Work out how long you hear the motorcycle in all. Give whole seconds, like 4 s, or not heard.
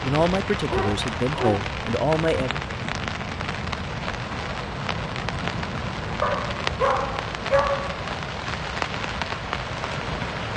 not heard.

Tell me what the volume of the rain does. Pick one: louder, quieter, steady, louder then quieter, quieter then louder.
steady.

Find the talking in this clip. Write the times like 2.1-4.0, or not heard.
0.0-2.6.